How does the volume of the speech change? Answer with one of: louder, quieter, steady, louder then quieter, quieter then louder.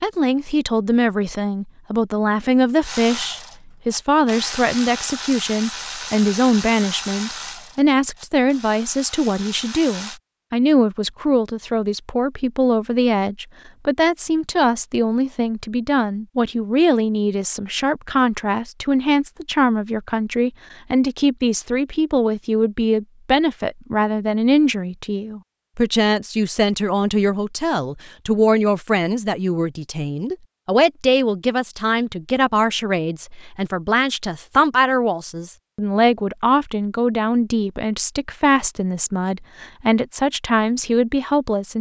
steady.